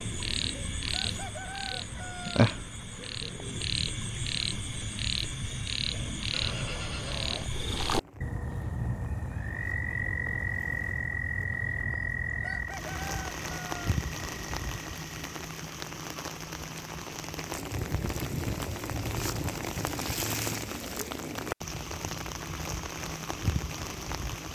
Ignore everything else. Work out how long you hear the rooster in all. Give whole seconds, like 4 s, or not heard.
3 s.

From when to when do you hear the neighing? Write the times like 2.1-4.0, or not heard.
6.3-7.5.